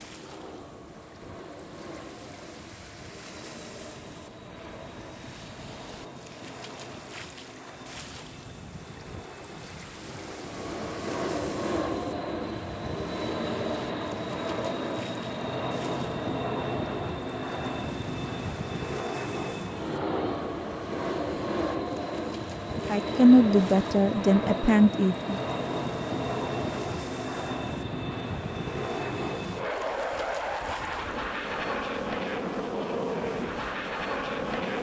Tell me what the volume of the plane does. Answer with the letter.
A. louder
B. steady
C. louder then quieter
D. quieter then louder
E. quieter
A.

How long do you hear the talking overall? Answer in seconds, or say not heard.
3 s.